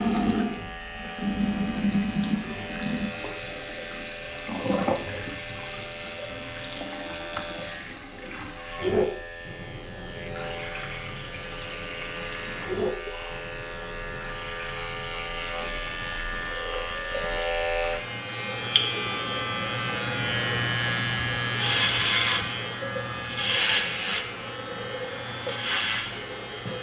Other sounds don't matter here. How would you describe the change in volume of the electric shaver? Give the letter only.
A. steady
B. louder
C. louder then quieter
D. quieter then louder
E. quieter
B.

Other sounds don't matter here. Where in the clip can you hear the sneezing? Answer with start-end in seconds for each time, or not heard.
not heard.